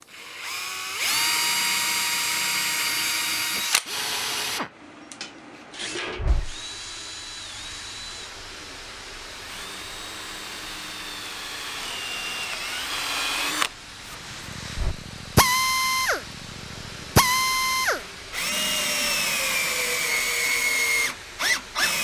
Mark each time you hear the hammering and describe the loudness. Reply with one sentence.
You can't hear the hammering here.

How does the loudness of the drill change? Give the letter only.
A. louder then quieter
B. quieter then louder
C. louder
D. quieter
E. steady
B.